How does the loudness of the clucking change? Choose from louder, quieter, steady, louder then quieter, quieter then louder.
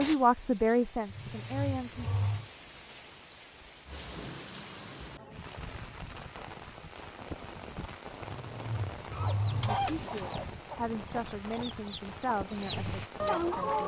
quieter then louder.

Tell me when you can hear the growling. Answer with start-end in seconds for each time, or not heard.
1.1-2.5, 8.2-9.8.